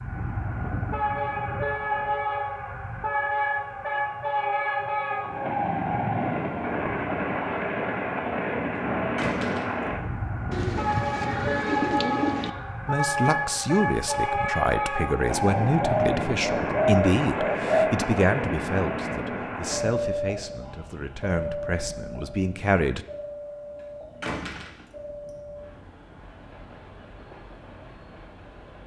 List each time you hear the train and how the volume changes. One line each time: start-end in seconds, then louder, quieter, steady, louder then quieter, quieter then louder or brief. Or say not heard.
0.0-28.8 quieter.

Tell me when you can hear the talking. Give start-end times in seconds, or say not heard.
12.8-23.1.